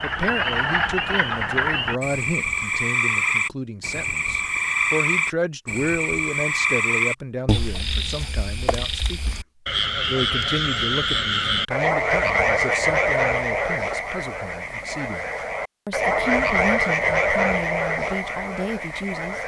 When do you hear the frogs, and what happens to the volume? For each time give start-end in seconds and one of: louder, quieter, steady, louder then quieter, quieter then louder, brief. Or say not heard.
0.0-19.4 steady.